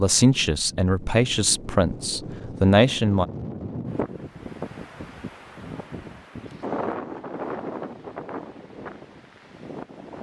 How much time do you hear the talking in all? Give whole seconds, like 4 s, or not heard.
3 s.